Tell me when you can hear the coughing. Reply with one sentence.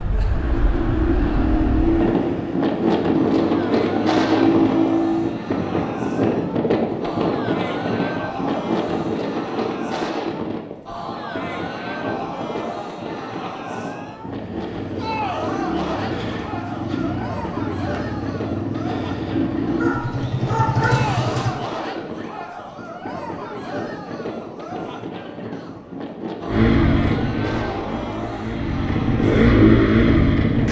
You can't hear the coughing here.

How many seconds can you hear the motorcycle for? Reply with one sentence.
The motorcycle can be heard for 17 seconds in total.